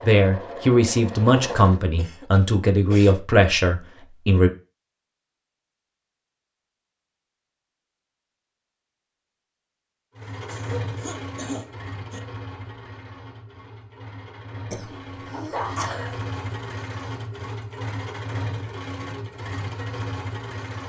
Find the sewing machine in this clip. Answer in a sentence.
The sewing machine can be heard from 0.0 to 1.9 s and from 10.2 to 20.8 s.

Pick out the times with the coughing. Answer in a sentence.
You can hear the coughing from 1.9 to 3.1 s, from 10.4 to 12.2 s and from 14.7 to 16.2 s.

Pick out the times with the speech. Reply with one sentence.
The speech can be heard from 0.0 to 4.5 s.